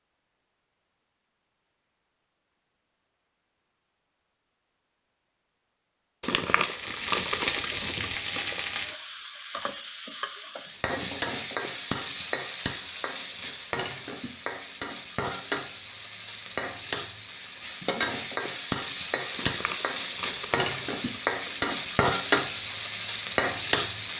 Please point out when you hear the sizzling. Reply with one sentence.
You can hear the sizzling from 6.7 to 24.1 s.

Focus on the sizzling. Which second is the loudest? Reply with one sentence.
The volume of the sizzling peaks at 22 seconds.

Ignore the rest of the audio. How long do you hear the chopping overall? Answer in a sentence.
You can't hear the chopping here.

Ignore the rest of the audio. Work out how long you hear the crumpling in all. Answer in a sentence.
The crumpling can be heard for 5 seconds in total.